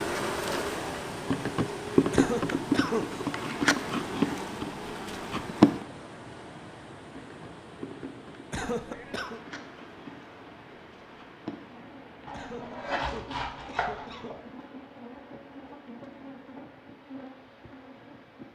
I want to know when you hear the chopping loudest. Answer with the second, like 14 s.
13 s.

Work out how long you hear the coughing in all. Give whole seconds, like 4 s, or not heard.
4 s.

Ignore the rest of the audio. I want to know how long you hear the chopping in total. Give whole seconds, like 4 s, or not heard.
2 s.